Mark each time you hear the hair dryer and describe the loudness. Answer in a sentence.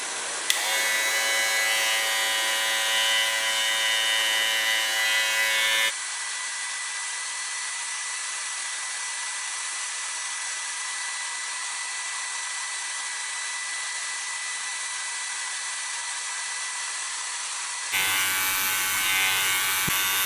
The hair dryer can be heard from 0.0 to 20.2 s, at a steady volume.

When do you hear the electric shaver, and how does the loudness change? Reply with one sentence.
You can hear the electric shaver from 0.0 to 6.0 s, at a steady volume; and briefly from 17.9 to 20.2 s.